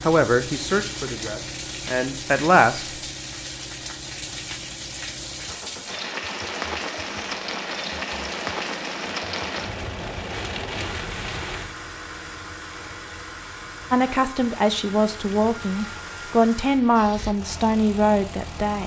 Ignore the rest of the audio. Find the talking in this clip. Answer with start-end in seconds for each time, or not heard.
0.0-2.9, 13.9-18.8.